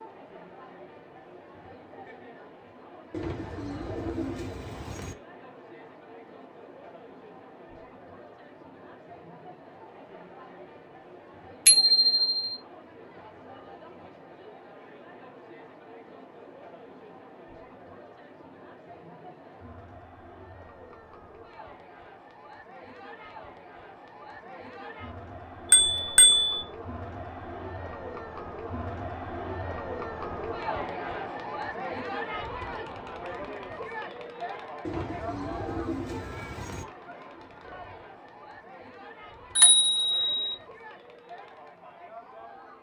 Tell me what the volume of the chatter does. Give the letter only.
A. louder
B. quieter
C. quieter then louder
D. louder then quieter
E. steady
D.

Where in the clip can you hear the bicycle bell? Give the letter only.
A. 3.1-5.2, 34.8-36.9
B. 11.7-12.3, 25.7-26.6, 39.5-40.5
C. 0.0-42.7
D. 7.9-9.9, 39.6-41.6
B.